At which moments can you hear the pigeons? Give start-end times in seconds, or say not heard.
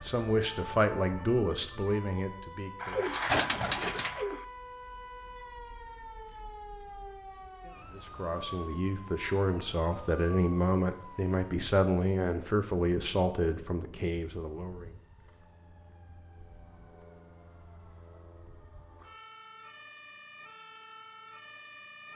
2.8-4.5.